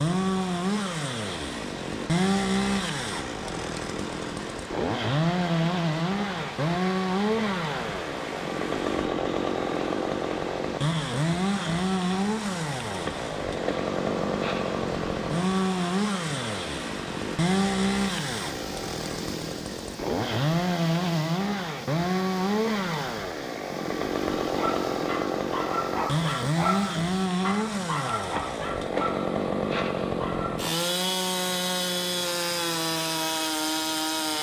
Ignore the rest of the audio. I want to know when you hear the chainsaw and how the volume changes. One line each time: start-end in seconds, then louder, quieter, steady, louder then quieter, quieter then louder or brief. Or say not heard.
0.0-34.3 steady.